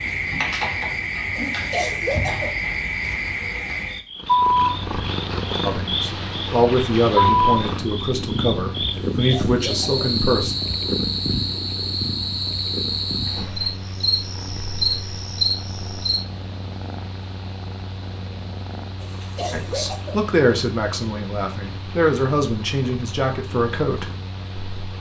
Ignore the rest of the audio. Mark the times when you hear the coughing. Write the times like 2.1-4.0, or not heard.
1.4-2.5, 9.1-9.9, 19.0-20.2.